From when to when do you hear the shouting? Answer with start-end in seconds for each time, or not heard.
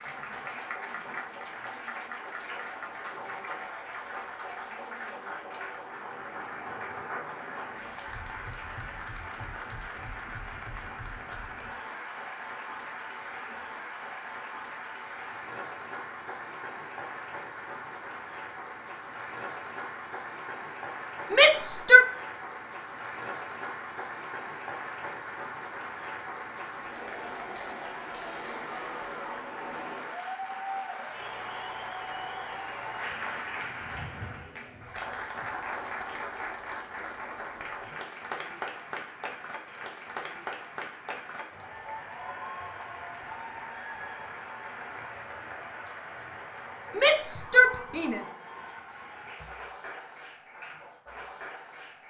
21.3-22.1, 47.0-48.2.